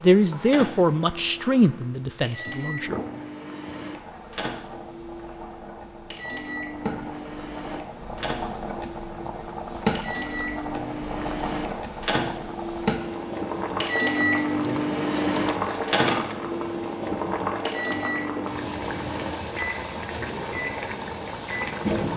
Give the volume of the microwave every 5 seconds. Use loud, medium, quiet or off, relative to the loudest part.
medium, medium, loud, loud, off.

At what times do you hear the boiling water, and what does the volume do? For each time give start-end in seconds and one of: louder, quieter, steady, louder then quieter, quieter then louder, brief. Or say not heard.
0.0-22.1 louder.